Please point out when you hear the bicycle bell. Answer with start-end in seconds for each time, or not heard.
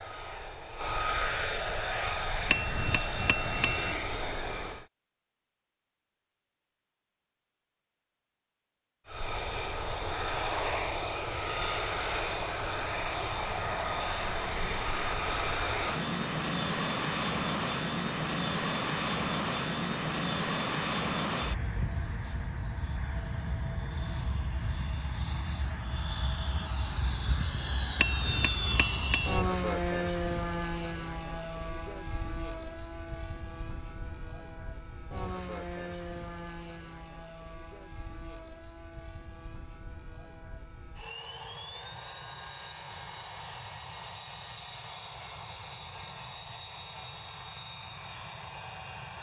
2.5-4.0, 27.9-29.4.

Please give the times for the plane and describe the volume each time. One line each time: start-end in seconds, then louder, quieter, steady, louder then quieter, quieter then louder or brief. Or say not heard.
0.0-4.8 steady
9.1-49.1 quieter.